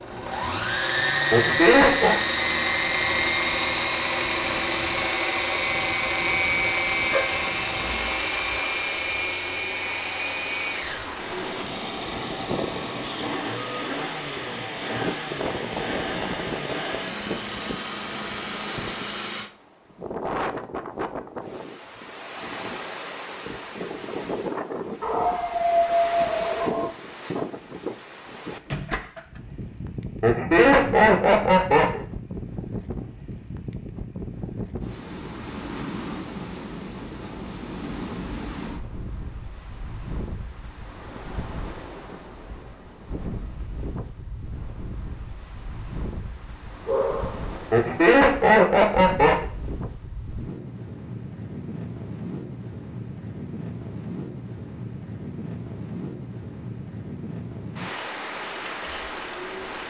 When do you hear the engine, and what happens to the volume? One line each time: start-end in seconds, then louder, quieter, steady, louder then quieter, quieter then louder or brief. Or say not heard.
0.0-19.5 quieter.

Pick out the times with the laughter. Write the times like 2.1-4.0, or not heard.
1.3-2.1, 30.2-32.0, 47.7-49.5.